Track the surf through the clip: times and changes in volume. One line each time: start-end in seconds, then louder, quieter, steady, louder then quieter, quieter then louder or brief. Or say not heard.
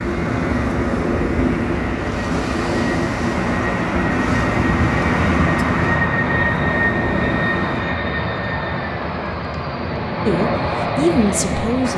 0.0-7.8 quieter.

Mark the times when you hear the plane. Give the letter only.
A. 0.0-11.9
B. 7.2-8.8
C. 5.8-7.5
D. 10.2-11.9
A.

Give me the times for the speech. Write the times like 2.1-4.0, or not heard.
10.2-11.9.